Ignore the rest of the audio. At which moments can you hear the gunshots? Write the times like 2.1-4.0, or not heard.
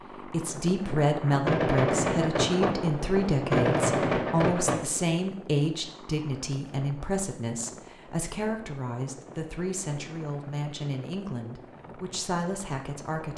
1.4-4.8.